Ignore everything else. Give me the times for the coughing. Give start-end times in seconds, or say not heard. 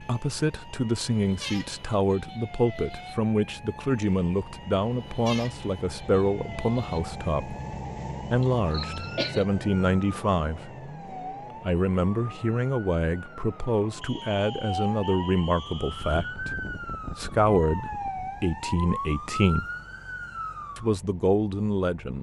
8.4-9.4.